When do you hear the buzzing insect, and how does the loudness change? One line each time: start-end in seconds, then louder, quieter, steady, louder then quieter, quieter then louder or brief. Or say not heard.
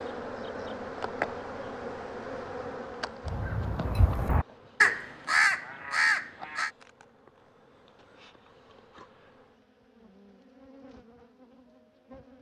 0.0-12.3 quieter.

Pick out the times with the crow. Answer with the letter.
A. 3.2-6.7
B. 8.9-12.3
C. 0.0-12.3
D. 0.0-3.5
A.